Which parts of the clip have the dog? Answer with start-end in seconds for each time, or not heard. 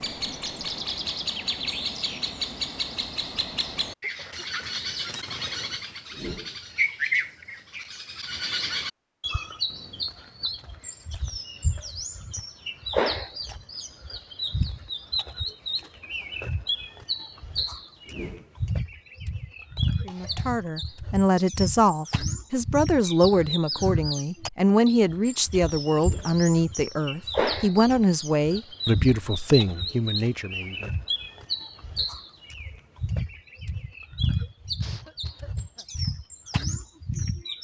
not heard.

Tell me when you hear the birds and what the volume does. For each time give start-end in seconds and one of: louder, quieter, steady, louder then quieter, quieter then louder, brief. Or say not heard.
0.0-37.5 steady.